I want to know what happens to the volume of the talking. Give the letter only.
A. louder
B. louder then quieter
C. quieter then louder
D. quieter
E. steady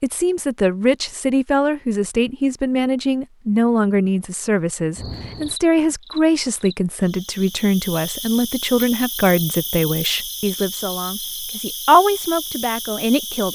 E.